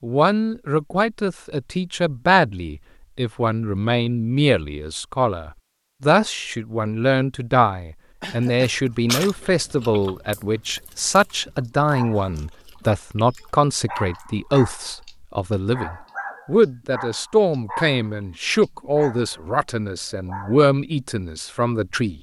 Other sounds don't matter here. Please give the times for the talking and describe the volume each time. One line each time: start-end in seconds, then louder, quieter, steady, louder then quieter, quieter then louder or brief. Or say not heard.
0.0-22.1 steady.